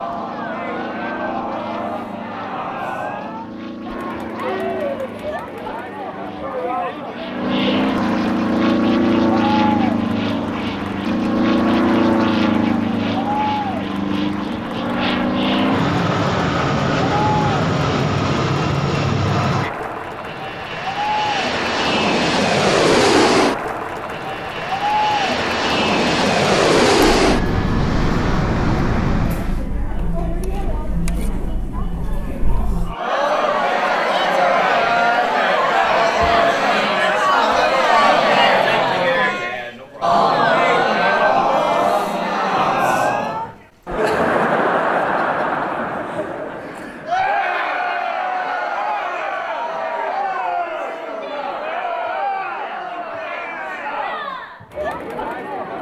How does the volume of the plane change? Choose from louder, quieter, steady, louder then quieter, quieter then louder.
louder.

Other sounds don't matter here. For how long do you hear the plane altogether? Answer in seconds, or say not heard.
30 s.